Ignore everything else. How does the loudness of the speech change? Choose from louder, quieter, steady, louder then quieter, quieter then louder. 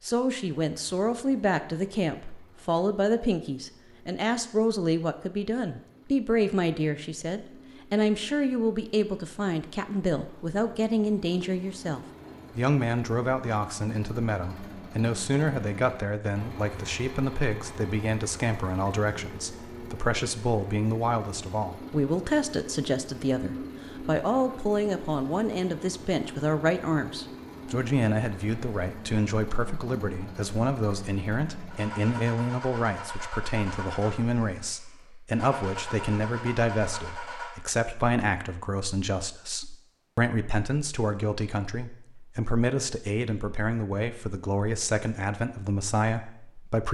steady.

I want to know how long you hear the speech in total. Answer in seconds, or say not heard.
47 s.